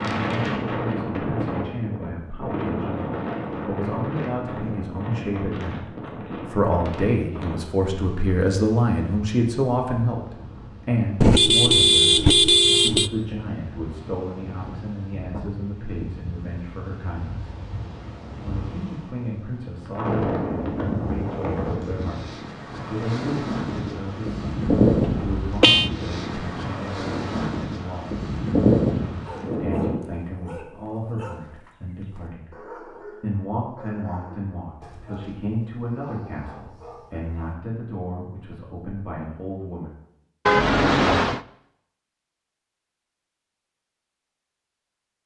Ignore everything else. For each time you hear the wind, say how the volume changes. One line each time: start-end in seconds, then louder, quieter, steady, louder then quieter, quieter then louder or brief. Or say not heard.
0.0-29.9 quieter then louder.